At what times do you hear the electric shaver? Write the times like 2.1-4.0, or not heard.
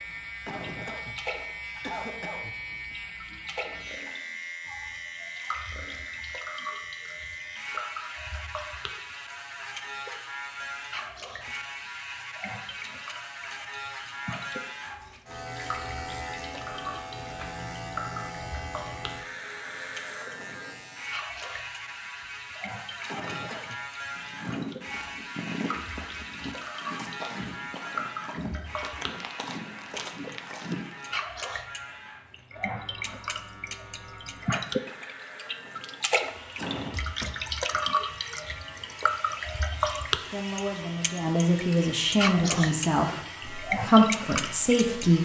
0.0-45.1.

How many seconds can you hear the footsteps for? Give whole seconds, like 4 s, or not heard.
7 s.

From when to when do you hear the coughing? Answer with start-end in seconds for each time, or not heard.
0.5-2.6, 23.1-23.9, 36.5-38.0.